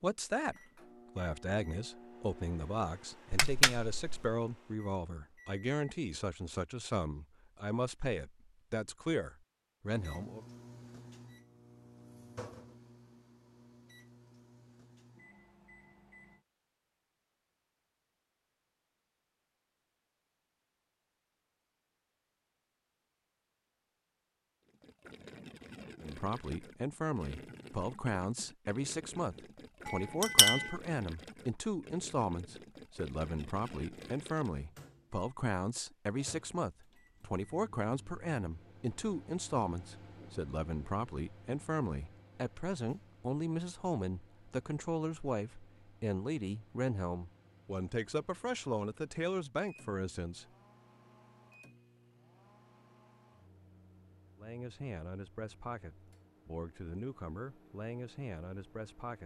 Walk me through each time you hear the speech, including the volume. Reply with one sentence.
The speech can be heard from 0.0 to 10.4 s, at a steady volume; from 26.0 to 50.5 s, at a steady volume; and from 54.4 to 59.2 s, at a steady volume.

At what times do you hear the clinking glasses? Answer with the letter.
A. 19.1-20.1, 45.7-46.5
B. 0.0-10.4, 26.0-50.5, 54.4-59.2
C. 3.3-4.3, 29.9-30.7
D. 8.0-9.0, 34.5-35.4
C.